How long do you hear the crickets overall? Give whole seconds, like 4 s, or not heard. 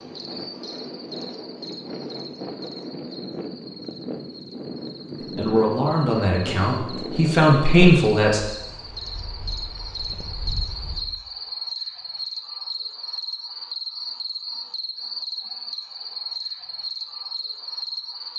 18 s.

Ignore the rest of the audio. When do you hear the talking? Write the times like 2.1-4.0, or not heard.
5.3-8.4.